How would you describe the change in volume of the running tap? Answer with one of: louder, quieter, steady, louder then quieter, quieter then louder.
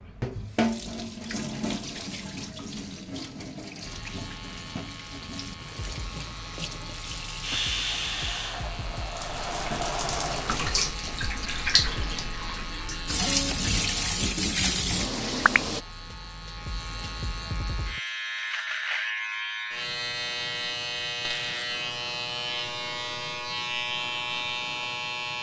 quieter then louder.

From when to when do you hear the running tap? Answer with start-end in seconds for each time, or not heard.
0.0-15.8.